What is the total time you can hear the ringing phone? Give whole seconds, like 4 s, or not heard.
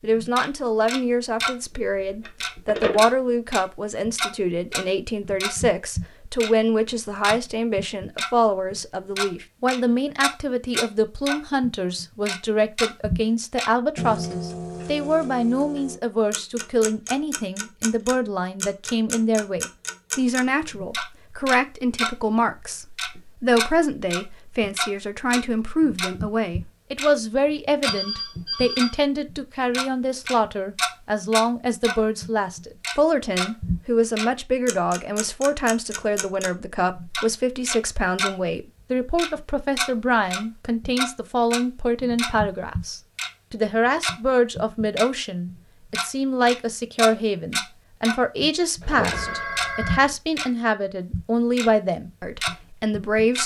3 s.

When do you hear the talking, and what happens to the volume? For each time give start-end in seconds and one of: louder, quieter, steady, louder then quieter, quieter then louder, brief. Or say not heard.
0.0-53.4 steady.